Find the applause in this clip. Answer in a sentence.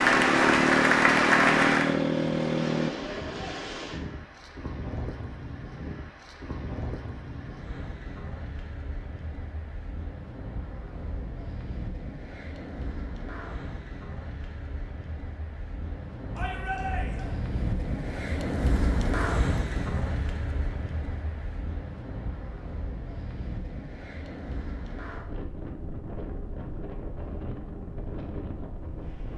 The applause can be heard from 0.0 to 1.9 s.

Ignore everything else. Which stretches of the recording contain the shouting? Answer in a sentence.
You can hear the shouting from 16.4 to 17.4 s.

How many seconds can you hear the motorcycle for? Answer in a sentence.
You can hear the motorcycle for 3 seconds altogether.